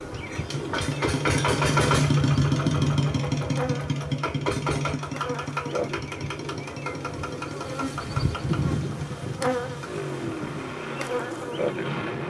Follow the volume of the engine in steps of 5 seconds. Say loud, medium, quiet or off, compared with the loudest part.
loud, medium, medium.